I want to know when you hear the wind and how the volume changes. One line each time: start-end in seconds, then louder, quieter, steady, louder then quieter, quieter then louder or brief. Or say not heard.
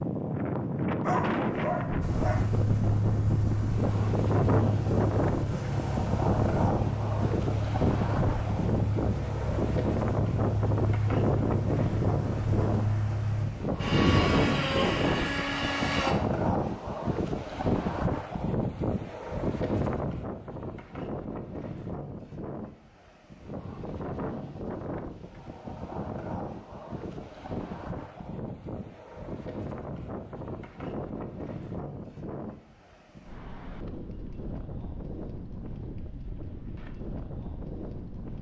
0.0-38.3 quieter.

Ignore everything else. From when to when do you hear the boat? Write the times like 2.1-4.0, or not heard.
2.0-16.1.